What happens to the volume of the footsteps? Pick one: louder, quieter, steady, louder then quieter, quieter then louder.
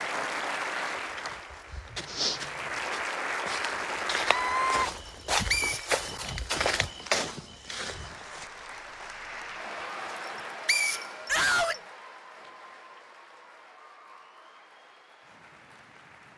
quieter then louder.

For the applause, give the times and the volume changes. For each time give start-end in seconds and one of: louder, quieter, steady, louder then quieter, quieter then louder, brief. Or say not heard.
0.0-4.9 quieter then louder
7.8-16.3 quieter.